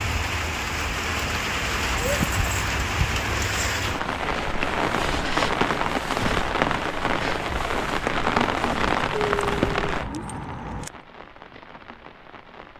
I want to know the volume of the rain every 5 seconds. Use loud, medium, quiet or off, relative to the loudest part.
loud, loud, quiet.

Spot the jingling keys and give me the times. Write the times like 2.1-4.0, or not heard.
2.0-2.9, 9.2-10.9.